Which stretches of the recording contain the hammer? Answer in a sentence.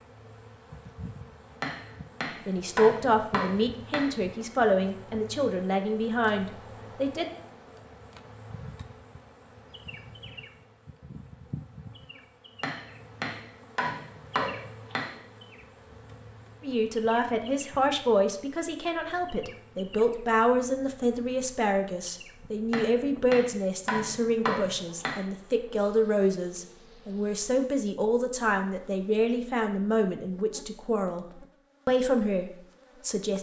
You can hear the hammer from 1.6 to 4.2 s, from 12.6 to 15.2 s and from 22.7 to 25.2 s.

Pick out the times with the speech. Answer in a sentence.
The speech can be heard from 2.5 to 7.2 s and from 16.6 to 33.3 s.